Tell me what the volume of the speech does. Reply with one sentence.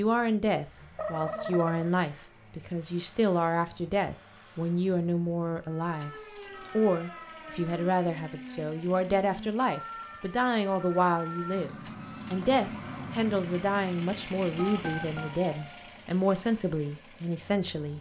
The loudness of the speech stays about the same.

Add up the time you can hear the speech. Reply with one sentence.
The speech can be heard for 18 seconds in total.